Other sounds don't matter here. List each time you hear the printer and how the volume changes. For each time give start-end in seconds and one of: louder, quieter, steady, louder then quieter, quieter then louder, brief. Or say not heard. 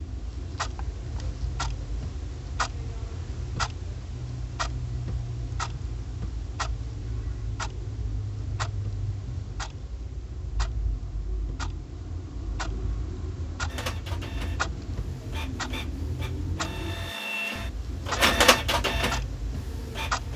13.7-20.3 louder then quieter.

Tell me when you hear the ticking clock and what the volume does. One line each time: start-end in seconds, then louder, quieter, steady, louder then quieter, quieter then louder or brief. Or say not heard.
0.0-20.3 steady.